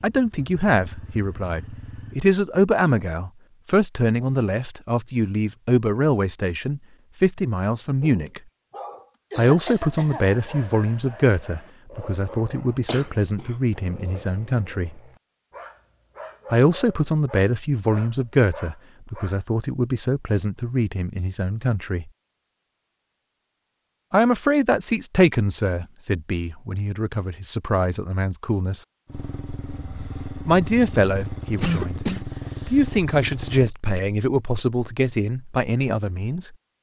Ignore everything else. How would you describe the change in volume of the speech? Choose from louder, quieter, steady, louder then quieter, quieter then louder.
steady.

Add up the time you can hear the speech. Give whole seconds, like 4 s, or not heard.
30 s.